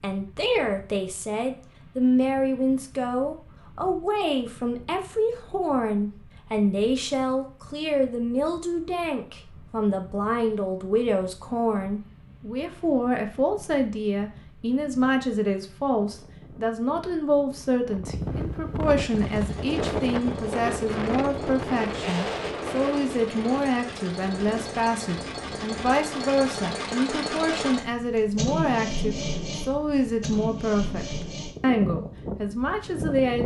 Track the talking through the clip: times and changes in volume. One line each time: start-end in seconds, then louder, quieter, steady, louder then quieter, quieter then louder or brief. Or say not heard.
0.0-33.4 steady.